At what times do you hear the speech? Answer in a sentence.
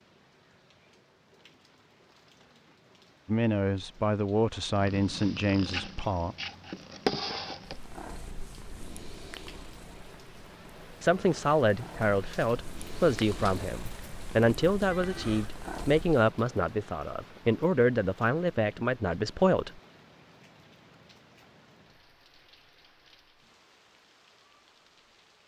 The speech can be heard from 3.2 to 6.3 s and from 11.0 to 19.7 s.